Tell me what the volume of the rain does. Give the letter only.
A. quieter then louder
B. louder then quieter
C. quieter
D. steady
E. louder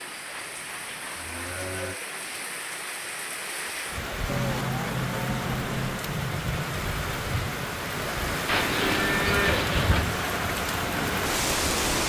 E.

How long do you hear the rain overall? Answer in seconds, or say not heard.
12 s.